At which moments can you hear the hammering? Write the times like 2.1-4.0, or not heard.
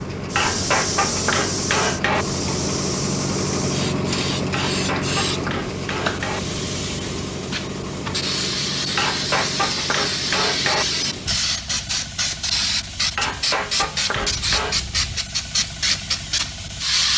0.3-2.2, 4.5-6.4, 8.9-10.8, 13.2-14.8.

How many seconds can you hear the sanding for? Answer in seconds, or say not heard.
not heard.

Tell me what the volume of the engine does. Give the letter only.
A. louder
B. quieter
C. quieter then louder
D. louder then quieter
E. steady
B.